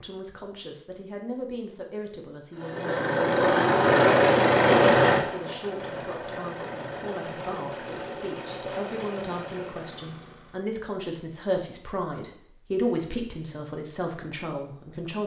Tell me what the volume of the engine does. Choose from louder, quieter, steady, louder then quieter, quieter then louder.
quieter.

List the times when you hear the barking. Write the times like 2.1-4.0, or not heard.
not heard.